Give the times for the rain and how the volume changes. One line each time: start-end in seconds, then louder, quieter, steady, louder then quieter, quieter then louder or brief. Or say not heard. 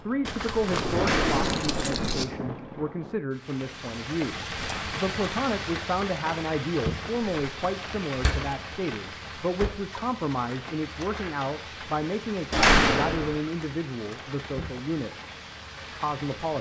0.0-16.5 quieter.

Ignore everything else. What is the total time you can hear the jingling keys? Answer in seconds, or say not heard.
2 s.